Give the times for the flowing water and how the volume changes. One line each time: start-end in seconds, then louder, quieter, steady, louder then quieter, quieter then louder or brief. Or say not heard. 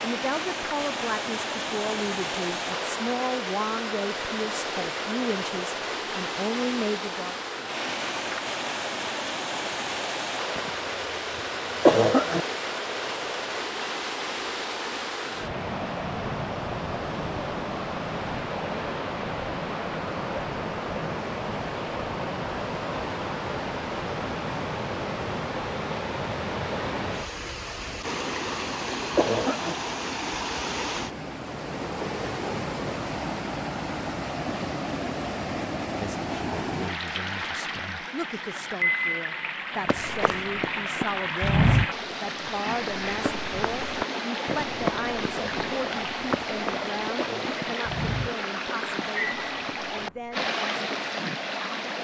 0.0-51.9 steady.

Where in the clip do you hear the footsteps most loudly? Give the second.
42 s.